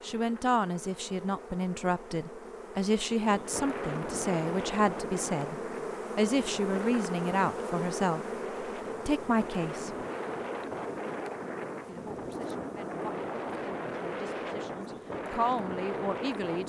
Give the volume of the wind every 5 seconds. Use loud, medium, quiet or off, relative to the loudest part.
loud, medium, loud, loud.